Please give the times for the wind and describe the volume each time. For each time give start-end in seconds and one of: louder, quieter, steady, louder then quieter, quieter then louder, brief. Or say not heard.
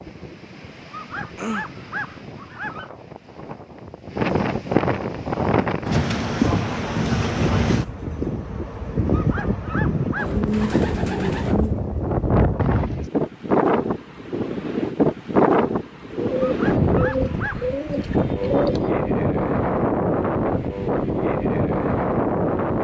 0.0-22.7 louder.